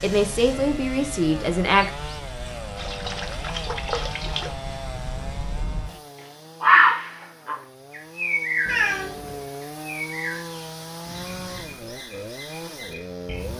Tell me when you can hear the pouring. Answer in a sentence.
The pouring can be heard from 2.8 to 4.5 s.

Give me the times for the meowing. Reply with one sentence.
The meowing can be heard from 8.7 to 9.4 s.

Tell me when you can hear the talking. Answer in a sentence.
The talking can be heard from 0.0 to 1.9 s.